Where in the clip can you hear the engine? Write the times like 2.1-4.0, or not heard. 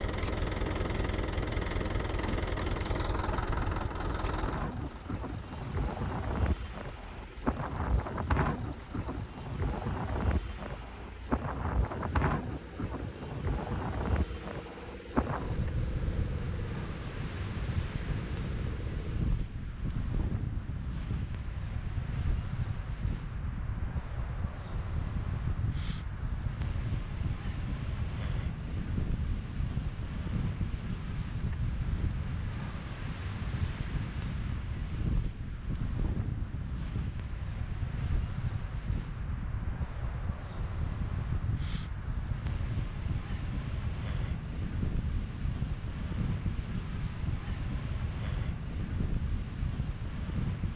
0.0-19.4.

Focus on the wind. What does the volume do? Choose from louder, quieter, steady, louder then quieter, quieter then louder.
steady.